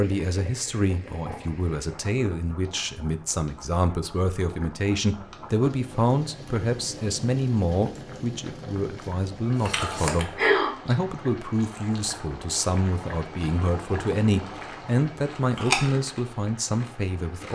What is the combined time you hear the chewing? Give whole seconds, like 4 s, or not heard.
6 s.